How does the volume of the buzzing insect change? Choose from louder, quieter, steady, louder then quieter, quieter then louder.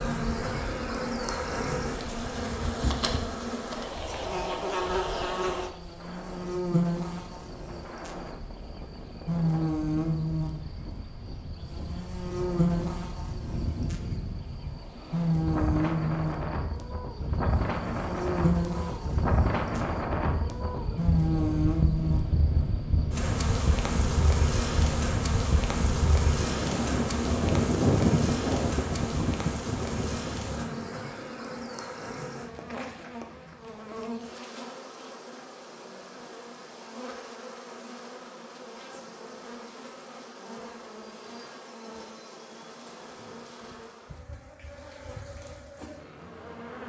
quieter.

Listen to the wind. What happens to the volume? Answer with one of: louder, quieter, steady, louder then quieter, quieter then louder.
louder.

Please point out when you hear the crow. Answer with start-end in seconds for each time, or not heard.
not heard.